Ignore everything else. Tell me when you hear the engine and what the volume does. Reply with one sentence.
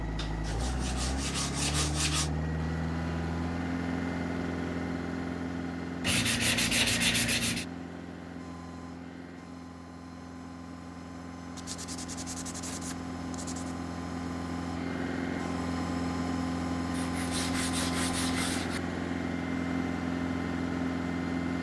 You can hear the engine from 0.0 to 21.5 s, getting quieter then louder.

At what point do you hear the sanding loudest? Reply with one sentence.
The volume of the sanding peaks at 7 seconds.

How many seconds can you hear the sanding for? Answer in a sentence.
The sanding can be heard for 8 seconds in total.